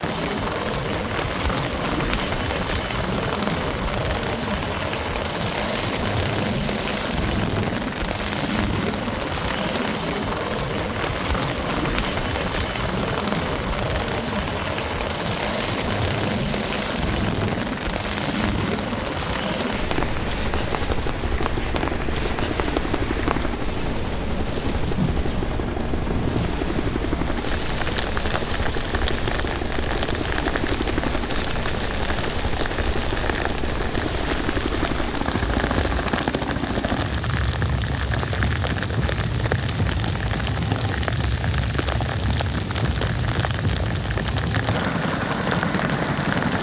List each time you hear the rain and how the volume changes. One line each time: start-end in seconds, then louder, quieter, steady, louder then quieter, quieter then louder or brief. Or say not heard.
0.0-46.5 steady.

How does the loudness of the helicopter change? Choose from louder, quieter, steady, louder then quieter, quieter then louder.
steady.